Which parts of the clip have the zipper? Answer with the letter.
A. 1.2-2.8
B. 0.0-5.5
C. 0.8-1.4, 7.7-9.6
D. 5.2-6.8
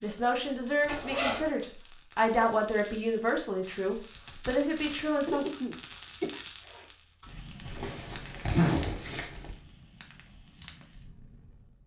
C.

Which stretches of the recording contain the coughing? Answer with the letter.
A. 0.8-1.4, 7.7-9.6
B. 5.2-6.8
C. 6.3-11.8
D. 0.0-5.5
B.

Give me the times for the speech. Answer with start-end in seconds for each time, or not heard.
0.0-5.5.